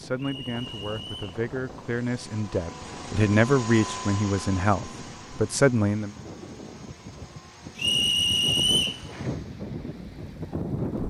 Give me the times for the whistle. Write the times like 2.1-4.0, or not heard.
0.1-1.4, 7.8-9.0.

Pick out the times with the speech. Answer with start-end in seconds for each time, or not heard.
0.0-6.2.